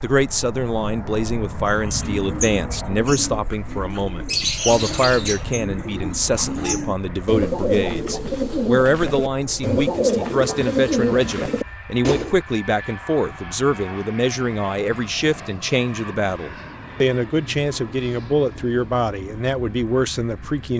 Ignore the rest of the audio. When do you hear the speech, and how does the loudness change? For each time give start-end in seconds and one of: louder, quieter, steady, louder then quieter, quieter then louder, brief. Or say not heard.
0.0-20.7 steady.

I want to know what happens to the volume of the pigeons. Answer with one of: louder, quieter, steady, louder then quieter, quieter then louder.
louder.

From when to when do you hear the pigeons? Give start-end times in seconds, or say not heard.
1.6-12.3.